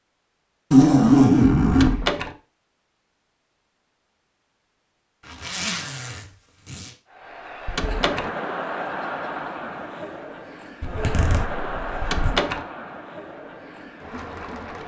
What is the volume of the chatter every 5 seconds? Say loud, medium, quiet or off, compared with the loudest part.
off, loud, loud.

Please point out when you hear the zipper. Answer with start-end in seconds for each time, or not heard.
0.7-2.0, 5.2-6.9, 10.8-12.3.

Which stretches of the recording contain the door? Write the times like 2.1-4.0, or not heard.
1.7-2.4, 7.7-8.3, 12.0-12.7.